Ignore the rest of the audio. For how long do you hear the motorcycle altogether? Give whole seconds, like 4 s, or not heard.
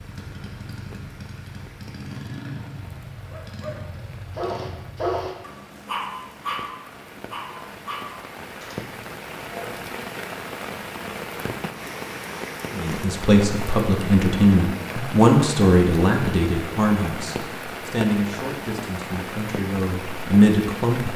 5 s.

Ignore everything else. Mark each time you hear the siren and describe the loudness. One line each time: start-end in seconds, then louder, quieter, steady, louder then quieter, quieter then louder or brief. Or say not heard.
not heard.